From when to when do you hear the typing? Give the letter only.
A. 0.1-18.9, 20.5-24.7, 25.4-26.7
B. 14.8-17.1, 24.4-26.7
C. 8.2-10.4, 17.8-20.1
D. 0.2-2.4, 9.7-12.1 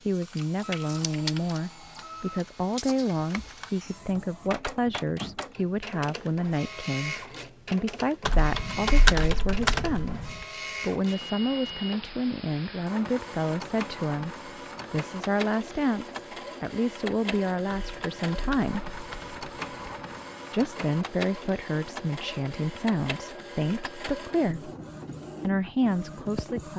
C.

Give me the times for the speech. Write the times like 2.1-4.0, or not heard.
0.1-18.9, 20.5-24.7, 25.4-26.7.